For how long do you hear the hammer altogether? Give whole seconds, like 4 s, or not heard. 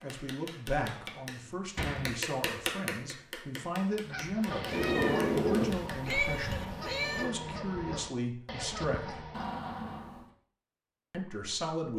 7 s.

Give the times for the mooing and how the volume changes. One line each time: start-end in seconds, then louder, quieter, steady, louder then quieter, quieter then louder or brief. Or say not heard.
not heard.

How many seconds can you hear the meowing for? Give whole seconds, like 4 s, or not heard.
3 s.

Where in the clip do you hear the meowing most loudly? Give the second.
6 s.